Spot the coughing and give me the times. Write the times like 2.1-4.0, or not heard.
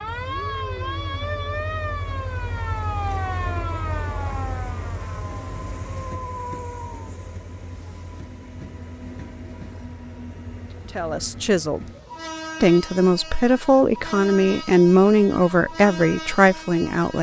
not heard.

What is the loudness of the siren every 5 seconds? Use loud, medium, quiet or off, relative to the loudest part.
loud, medium, off, off.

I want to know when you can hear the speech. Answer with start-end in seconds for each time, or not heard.
10.9-11.8, 12.6-17.1.